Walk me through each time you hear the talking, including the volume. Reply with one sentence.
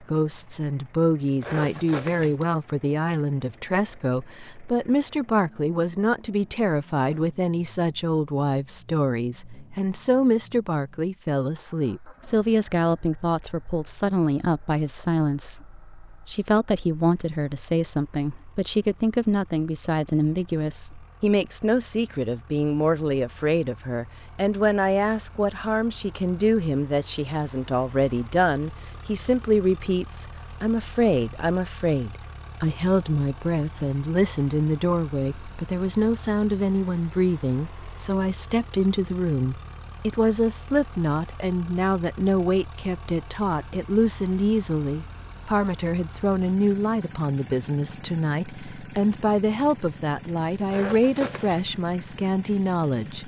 You can hear the talking from 0.1 to 53.2 s, at a steady volume.